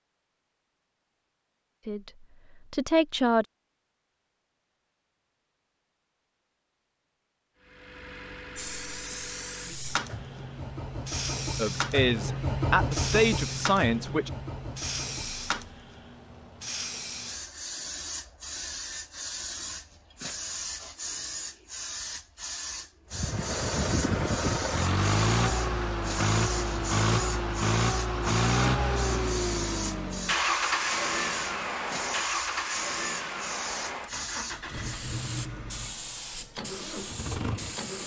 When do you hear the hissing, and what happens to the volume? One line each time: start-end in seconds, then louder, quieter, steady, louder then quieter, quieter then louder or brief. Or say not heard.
8.6-38.0 steady.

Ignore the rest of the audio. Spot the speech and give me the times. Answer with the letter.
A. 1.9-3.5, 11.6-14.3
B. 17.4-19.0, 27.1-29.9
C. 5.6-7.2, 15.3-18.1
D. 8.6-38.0
A.